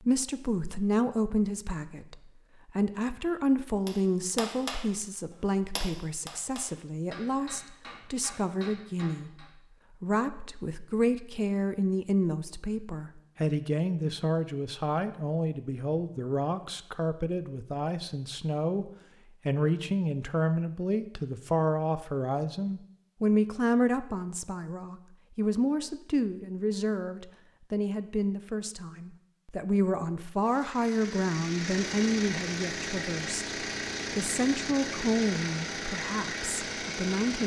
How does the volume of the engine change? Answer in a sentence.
The loudness of the engine stays about the same.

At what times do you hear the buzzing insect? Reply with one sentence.
The buzzing insect can't be heard in this clip.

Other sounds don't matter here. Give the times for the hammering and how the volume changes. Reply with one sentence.
The hammering can be heard from 3.9 to 9.5 s, getting quieter.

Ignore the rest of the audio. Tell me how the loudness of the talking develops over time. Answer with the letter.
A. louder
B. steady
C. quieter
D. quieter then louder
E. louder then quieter
B.